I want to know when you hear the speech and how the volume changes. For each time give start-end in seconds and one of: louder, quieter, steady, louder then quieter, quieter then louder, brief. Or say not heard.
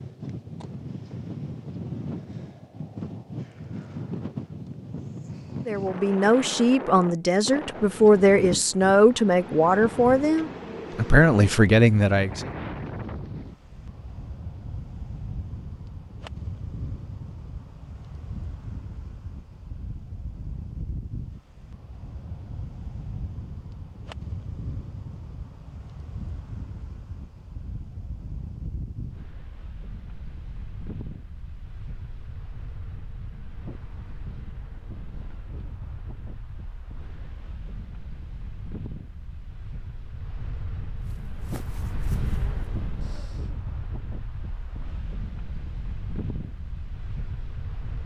5.7-12.5 steady.